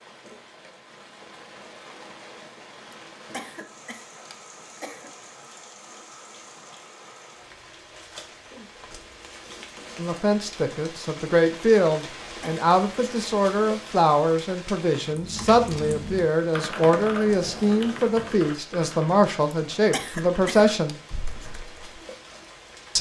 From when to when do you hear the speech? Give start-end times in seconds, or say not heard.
9.9-21.0.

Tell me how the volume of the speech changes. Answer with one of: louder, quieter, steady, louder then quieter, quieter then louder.
steady.